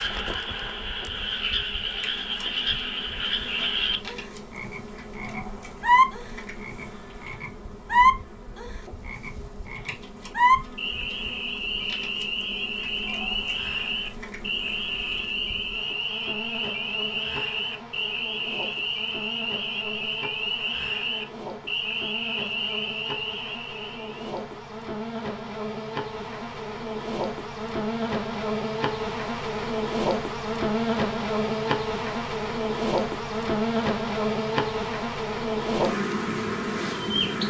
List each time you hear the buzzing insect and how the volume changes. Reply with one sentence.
The buzzing insect can be heard from 0.0 to 37.4 s, getting louder.